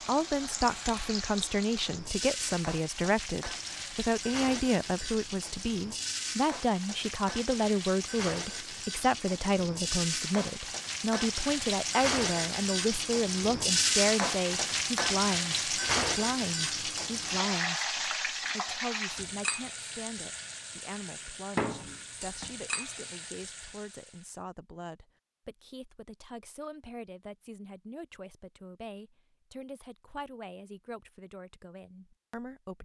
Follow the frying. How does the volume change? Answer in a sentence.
The loudness of the frying goes up, then down.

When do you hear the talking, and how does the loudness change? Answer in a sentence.
You can hear the talking from 0.1 to 32.8 s, getting quieter.